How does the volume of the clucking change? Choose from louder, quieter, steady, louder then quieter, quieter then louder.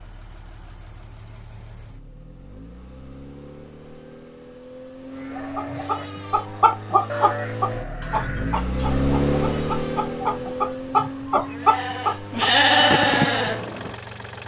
quieter then louder.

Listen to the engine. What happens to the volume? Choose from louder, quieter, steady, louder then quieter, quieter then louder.
louder then quieter.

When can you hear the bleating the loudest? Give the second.
13 s.